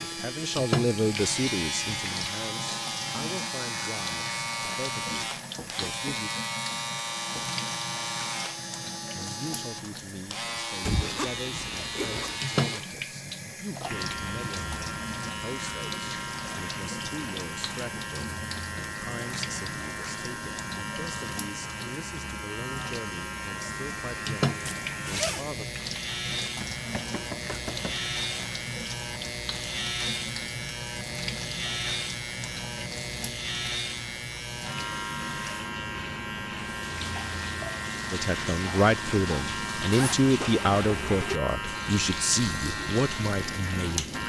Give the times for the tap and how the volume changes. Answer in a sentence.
The tap can be heard from 0.0 to 44.2 s, at a steady volume.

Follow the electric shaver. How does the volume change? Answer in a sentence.
The volume of the electric shaver stays about the same.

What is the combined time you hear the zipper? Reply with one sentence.
You can hear the zipper for 3 seconds altogether.